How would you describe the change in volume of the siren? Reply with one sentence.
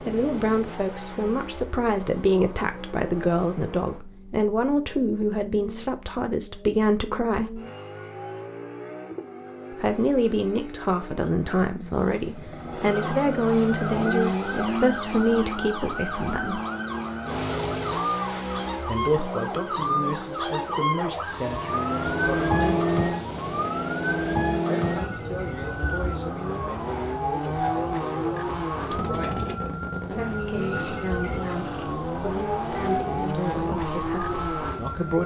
The loudness of the siren goes up, then down.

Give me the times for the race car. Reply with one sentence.
The race car can be heard from 0.0 to 35.2 s.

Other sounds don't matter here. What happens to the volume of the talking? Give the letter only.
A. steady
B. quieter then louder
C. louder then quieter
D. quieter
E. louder
D.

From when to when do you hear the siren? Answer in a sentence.
The siren can be heard from 12.8 to 35.2 s.